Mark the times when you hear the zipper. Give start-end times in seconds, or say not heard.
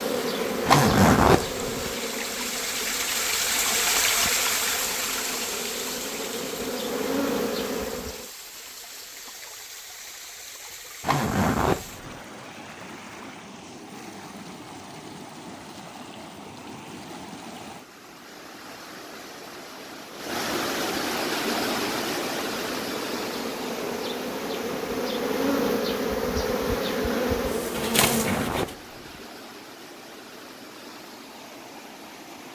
0.7-1.9, 11.0-12.2, 27.9-29.2.